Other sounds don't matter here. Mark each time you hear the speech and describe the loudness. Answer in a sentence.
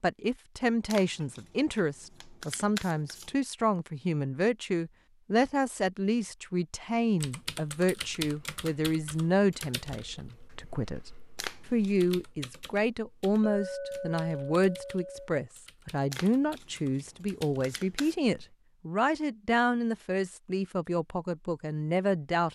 The speech can be heard from 0.0 to 22.4 s, at a steady volume.